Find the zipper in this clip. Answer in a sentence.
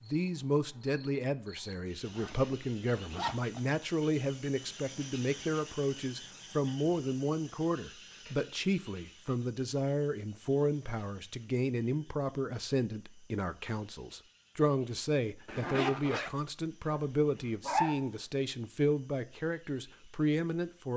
You can hear the zipper from 2.0 to 3.6 s and from 15.4 to 16.3 s.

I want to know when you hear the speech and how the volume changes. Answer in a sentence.
The speech can be heard from 0.0 to 20.9 s, at a steady volume.